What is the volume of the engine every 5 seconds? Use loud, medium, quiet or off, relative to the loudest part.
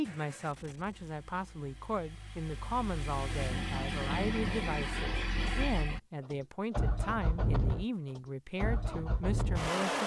medium, loud.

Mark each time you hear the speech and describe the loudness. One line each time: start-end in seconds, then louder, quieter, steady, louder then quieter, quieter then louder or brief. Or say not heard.
0.0-10.0 steady.